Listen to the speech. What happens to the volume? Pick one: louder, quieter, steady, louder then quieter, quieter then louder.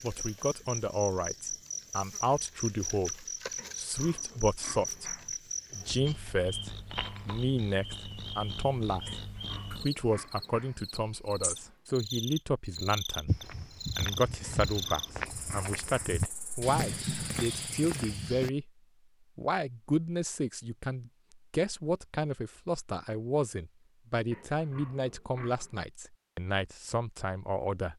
steady.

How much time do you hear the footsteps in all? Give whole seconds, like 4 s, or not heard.
5 s.